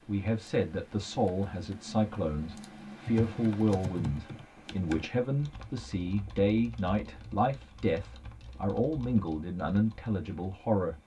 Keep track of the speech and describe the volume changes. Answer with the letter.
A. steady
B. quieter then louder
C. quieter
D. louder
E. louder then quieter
A.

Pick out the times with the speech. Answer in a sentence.
You can hear the speech from 0.1 to 11.0 s.